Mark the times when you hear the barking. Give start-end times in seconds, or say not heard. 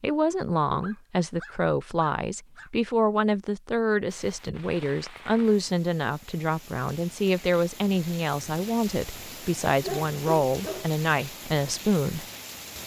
0.8-2.7, 9.8-10.9.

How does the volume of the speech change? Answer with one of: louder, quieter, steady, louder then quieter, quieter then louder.
steady.